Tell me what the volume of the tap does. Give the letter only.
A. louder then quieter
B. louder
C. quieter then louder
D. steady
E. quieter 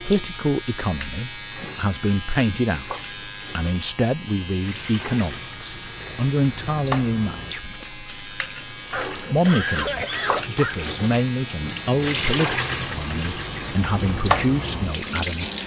B.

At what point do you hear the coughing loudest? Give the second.
10 s.